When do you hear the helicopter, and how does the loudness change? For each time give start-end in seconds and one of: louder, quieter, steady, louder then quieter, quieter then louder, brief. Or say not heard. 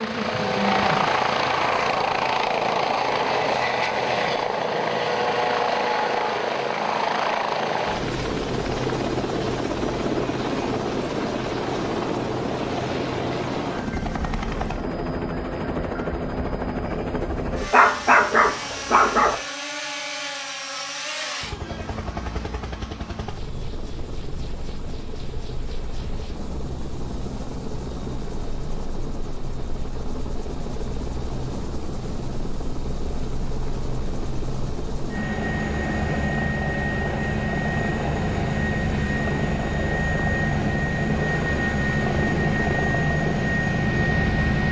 0.0-44.6 quieter then louder.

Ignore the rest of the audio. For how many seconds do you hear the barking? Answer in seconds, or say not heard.
2 s.